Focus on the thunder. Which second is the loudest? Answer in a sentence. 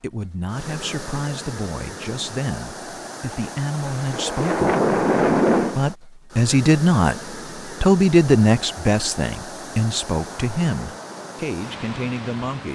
The loudest moment of the thunder is at 5 seconds.